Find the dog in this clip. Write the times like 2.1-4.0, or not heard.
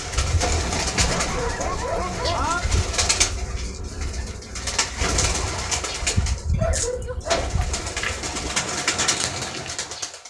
1.0-2.6, 6.3-8.3.